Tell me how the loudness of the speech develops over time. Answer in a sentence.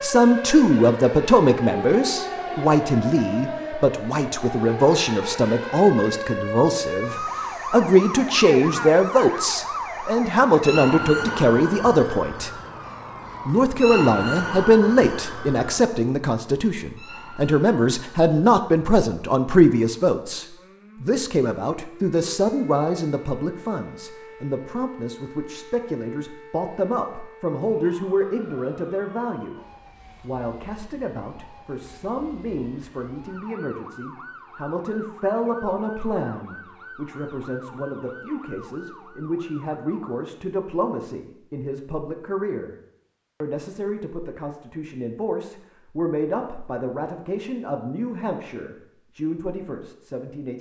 The volume of the speech goes down.